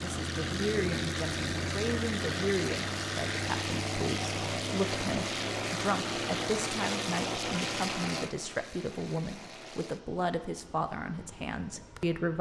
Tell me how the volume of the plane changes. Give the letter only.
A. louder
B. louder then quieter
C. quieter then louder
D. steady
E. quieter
E.